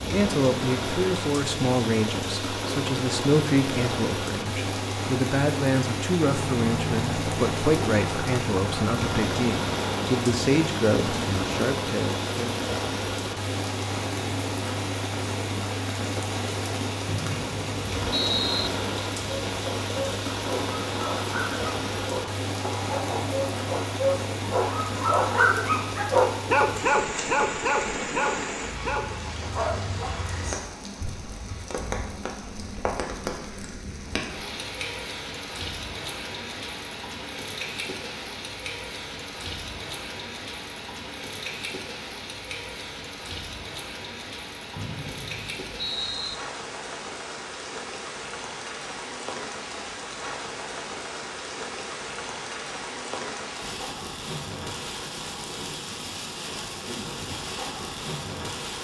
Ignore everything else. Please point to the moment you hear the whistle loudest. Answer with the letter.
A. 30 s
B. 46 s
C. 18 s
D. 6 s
C.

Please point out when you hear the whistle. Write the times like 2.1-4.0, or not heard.
17.1-18.7, 44.8-46.4.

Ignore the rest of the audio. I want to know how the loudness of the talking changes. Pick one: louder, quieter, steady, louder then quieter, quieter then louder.
steady.